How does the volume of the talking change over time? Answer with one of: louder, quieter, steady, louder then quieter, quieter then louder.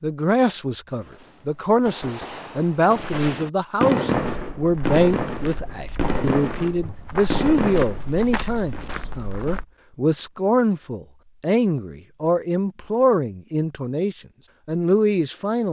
steady.